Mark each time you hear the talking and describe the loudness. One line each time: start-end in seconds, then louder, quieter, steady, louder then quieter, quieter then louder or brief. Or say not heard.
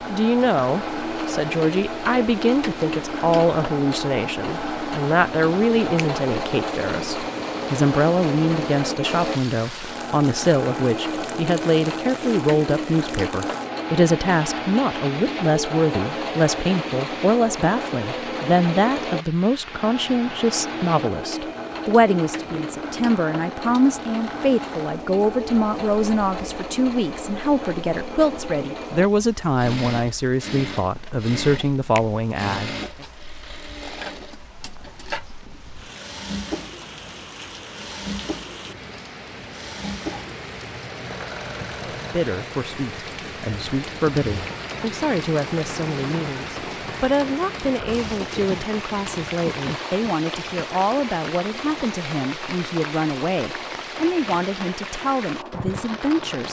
0.1-33.0 steady
41.9-56.4 steady.